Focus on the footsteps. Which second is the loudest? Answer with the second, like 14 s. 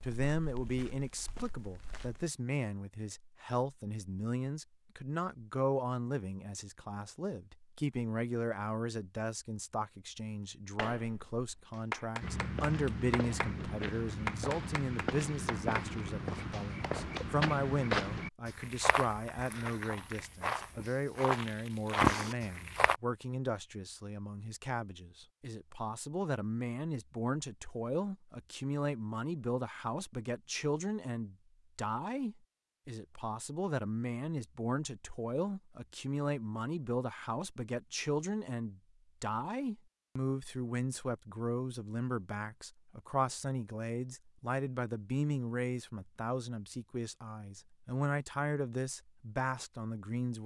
22 s.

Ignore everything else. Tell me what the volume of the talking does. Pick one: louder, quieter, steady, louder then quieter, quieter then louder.
steady.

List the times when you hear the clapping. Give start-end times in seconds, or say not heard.
10.8-17.2.